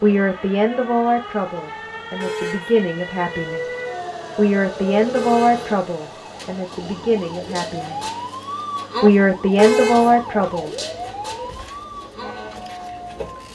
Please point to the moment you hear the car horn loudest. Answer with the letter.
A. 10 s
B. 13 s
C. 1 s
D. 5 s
A.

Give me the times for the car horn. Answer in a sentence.
The car horn can be heard from 2.2 to 2.8 s, from 5.1 to 5.7 s and from 9.6 to 10.2 s.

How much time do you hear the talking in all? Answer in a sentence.
The talking can be heard for 9 seconds in total.